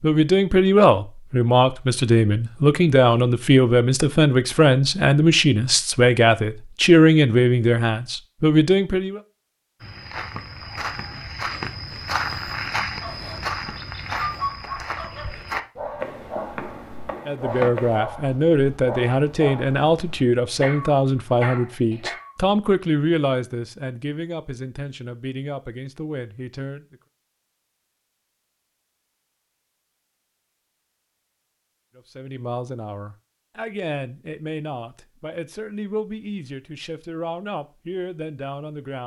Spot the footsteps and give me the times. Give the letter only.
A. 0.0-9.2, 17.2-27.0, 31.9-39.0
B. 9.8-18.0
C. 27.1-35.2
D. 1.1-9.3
B.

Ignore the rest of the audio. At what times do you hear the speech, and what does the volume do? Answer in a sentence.
You can hear the speech from 0.0 to 9.2 s, at a steady volume; from 17.2 to 27.0 s, getting quieter; and from 31.9 to 39.0 s, at a steady volume.